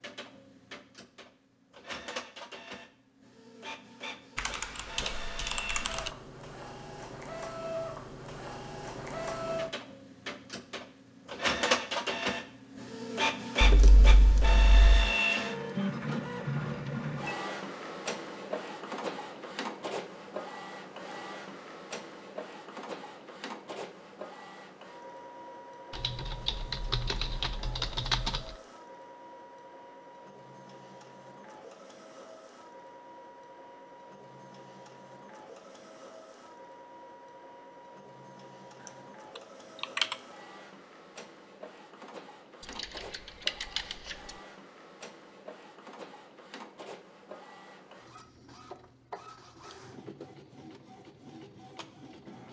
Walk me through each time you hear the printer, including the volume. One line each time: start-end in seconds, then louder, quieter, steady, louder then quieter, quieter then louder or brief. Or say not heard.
0.0-52.4 louder then quieter.